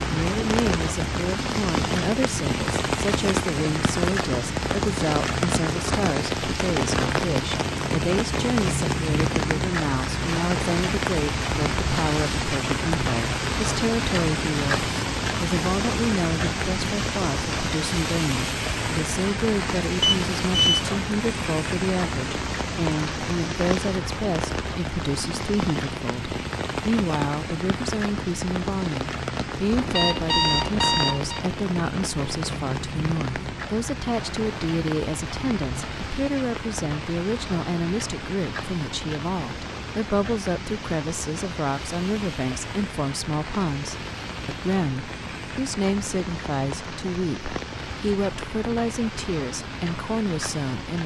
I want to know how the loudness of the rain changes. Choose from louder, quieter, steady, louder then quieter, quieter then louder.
quieter.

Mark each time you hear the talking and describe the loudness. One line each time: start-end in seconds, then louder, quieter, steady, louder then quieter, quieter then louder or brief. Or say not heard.
0.1-51.0 steady.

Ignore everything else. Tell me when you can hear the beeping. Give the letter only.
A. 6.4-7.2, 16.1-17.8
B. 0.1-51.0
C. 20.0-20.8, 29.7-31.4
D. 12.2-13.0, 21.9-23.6
C.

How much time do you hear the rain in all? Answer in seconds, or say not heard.
51 s.